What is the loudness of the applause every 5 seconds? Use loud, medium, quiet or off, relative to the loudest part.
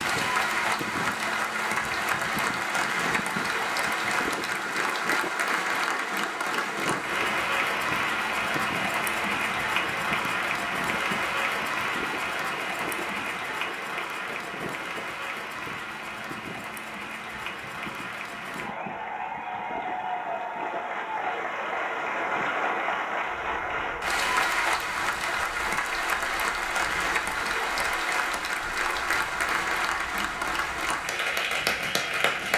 loud, loud, loud, medium, loud, loud, loud.